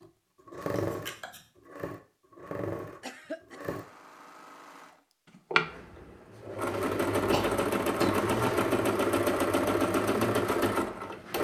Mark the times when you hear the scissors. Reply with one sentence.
The scissors can be heard from 0.8 to 1.4 s.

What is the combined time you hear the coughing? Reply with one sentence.
You can hear the coughing for 2 seconds altogether.